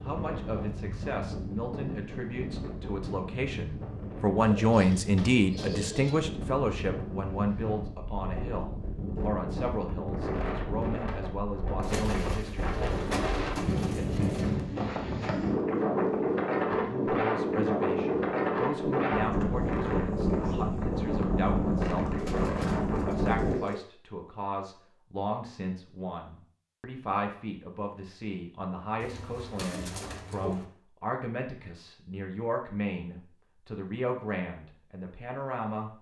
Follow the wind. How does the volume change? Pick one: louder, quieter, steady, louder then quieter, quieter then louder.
louder.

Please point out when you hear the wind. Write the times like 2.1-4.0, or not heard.
0.0-23.6.